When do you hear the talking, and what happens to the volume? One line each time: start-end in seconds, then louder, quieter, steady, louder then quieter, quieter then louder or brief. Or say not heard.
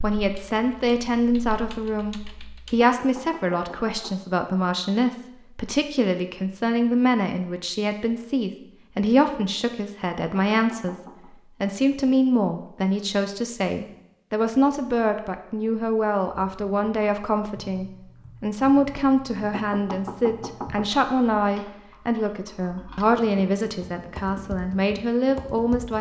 0.0-10.9 steady
11.6-25.9 steady.